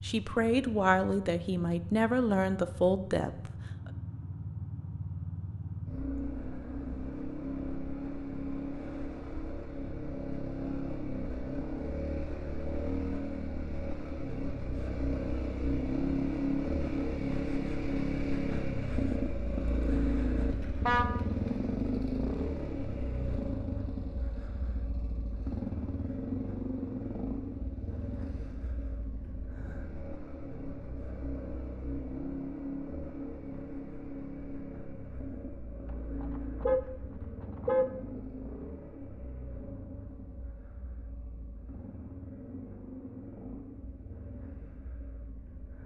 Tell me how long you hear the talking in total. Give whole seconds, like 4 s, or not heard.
3 s.